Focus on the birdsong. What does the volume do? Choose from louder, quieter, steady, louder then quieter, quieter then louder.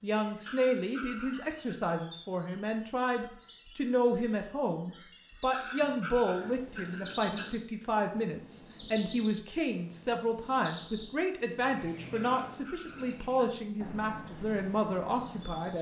quieter.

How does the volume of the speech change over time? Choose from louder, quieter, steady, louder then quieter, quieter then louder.
steady.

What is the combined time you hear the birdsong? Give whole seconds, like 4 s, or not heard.
16 s.